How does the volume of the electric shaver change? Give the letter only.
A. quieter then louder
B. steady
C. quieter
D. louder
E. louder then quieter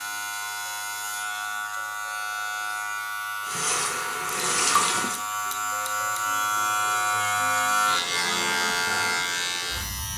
D.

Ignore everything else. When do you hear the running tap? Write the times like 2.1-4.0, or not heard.
3.5-5.2.